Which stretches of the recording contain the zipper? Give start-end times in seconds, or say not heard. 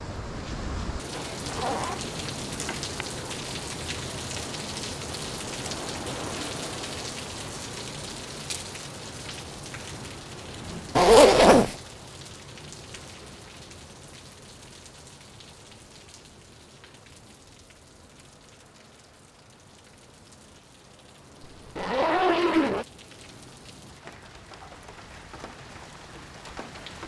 1.1-2.8, 10.9-11.8, 21.6-22.9.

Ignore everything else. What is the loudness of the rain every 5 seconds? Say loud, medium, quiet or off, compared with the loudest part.
loud, loud, medium, quiet, quiet, medium.